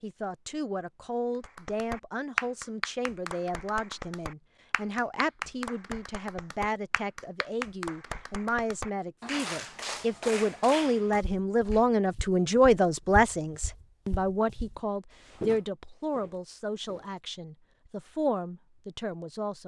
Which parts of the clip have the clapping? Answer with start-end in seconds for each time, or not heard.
1.4-11.8.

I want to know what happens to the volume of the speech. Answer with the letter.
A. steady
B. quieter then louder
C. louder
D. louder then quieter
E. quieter
D.